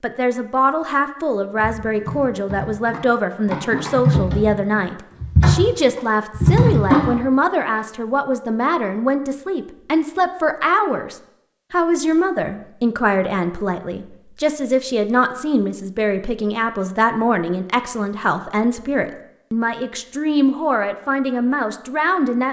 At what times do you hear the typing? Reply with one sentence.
The typing can be heard from 1.6 to 7.1 s.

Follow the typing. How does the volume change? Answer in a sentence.
The loudness of the typing goes up.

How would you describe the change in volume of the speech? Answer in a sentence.
The loudness of the speech stays about the same.